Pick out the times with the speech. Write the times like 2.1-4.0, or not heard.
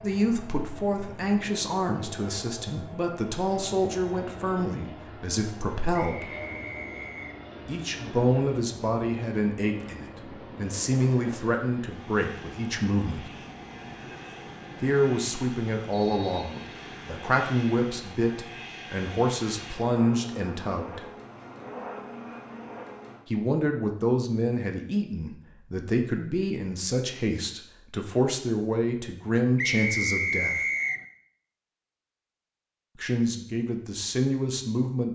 0.0-6.3, 7.7-13.3, 14.8-21.1, 23.2-30.6, 33.0-35.1.